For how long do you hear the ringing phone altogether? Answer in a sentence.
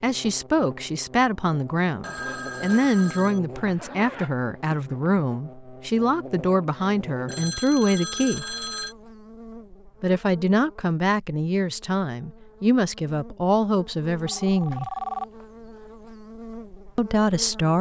The ringing phone can be heard for 5 seconds in total.